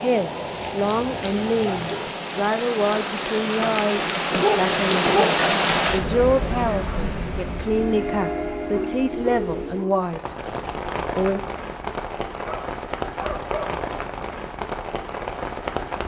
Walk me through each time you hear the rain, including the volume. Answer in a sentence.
You can hear the rain from 0.0 to 16.0 s, getting louder then quieter.